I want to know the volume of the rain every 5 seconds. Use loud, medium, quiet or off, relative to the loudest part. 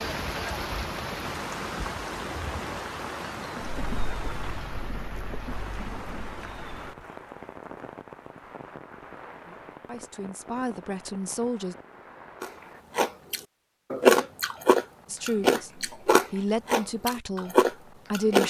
loud, medium, quiet, off.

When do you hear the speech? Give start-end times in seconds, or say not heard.
9.4-11.8, 15.1-18.4.